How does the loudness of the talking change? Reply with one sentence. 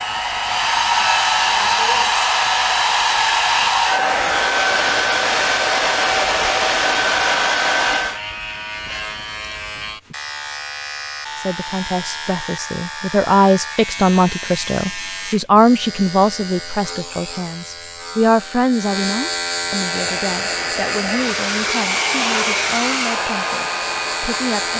The volume of the talking goes down.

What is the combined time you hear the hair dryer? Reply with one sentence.
The hair dryer can be heard for 13 seconds in total.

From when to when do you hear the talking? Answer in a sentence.
You can hear the talking from 11.3 to 24.7 s.